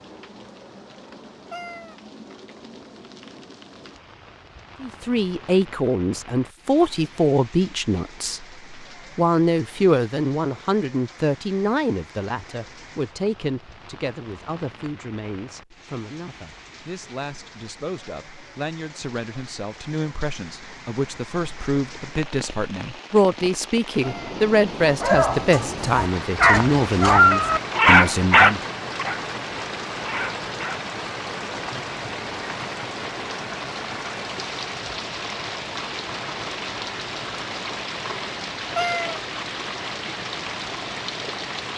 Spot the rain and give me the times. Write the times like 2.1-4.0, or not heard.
0.0-41.7.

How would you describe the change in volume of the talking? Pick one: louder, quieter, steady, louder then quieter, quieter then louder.
quieter then louder.